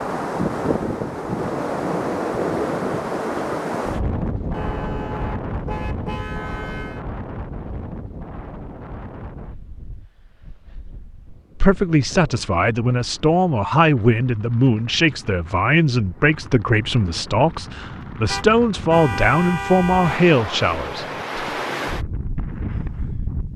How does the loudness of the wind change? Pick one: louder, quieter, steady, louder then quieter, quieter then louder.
quieter then louder.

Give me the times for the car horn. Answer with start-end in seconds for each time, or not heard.
4.5-7.0, 18.2-20.2.